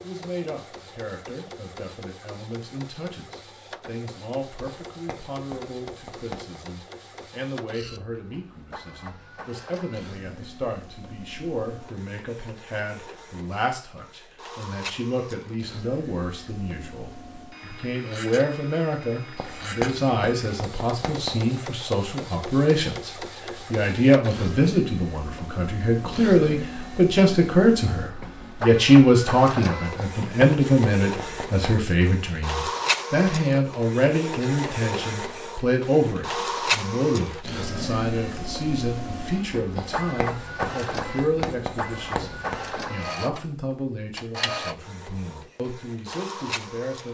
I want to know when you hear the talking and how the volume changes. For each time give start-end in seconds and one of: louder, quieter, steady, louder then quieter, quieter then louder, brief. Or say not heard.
0.0-47.0 louder then quieter.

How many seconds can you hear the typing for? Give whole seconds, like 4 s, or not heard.
not heard.